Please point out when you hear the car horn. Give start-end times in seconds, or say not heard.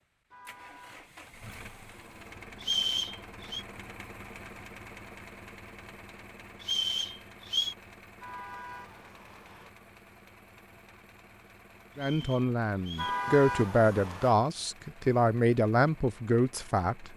0.3-1.0, 8.2-9.7, 12.9-14.3.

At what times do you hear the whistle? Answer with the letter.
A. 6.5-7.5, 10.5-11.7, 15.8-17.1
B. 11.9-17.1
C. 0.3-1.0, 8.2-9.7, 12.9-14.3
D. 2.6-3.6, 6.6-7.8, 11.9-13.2
D.